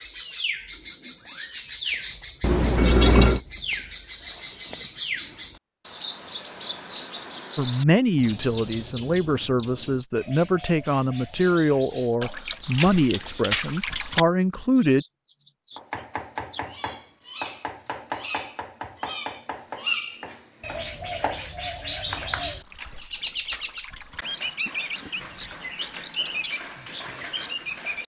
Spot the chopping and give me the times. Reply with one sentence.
The chopping can be heard from 15.8 to 22.5 s.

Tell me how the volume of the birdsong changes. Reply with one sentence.
The loudness of the birdsong goes down, then up.